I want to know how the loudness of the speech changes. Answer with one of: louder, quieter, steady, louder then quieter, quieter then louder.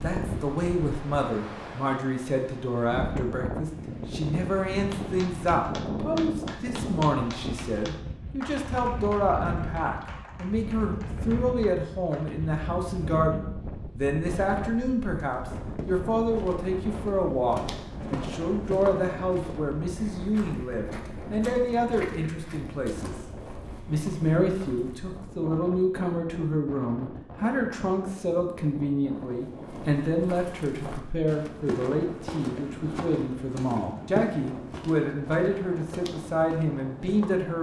steady.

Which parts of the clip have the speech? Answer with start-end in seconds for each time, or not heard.
0.0-23.1, 23.9-37.5.